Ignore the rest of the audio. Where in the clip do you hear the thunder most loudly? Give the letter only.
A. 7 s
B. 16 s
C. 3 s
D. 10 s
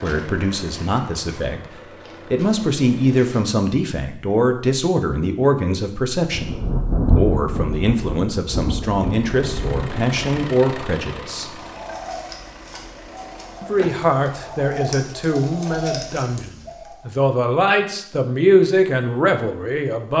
A.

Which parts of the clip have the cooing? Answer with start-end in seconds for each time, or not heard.
11.6-17.1.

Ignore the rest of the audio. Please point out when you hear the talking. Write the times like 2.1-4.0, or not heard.
0.0-11.6, 13.6-20.1.